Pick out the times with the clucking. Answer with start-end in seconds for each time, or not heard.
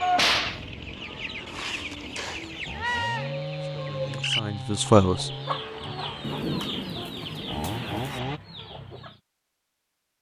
0.3-9.2.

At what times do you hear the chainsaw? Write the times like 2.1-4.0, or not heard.
0.0-8.4.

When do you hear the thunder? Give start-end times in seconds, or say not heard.
6.2-8.2.